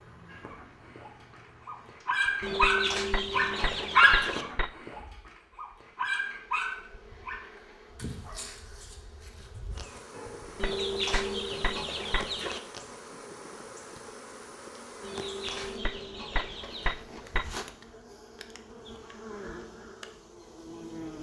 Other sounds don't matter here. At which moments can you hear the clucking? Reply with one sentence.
You can hear the clucking from 2.4 to 4.5 s, from 10.6 to 12.6 s and from 15.0 to 16.9 s.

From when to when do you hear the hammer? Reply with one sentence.
You can hear the hammer from 2.2 to 4.7 s, from 10.4 to 12.3 s and from 15.7 to 17.4 s.